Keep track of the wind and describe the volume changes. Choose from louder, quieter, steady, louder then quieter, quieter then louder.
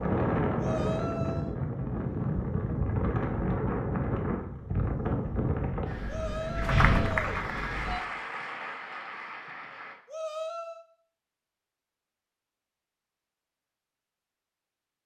steady.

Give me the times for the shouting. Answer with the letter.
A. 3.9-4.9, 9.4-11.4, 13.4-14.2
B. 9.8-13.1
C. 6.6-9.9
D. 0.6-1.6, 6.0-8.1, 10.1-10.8
D.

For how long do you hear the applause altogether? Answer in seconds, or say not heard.
3 s.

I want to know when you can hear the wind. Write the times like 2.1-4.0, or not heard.
0.0-8.0.